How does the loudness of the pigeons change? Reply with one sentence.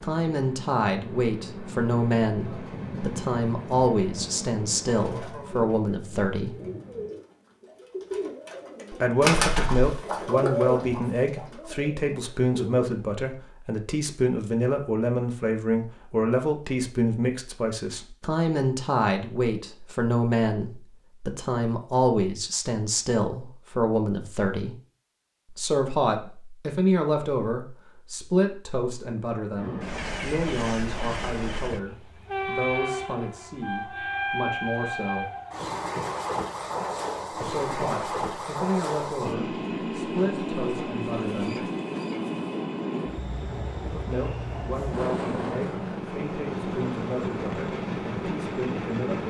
The volume of the pigeons goes up, then down.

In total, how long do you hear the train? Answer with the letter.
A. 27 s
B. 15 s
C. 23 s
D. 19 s
A.